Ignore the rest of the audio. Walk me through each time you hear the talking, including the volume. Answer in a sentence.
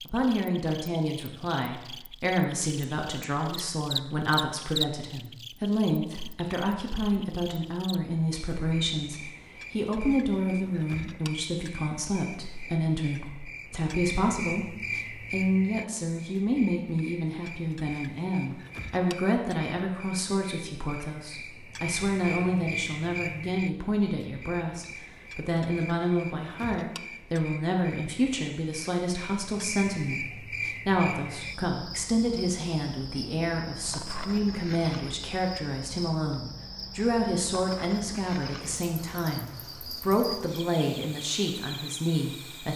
You can hear the talking from 0.1 to 42.7 s, at a steady volume.